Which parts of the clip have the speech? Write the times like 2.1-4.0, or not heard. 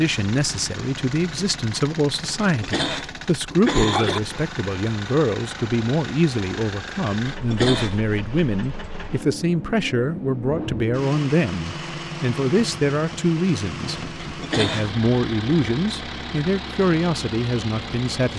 0.0-18.3.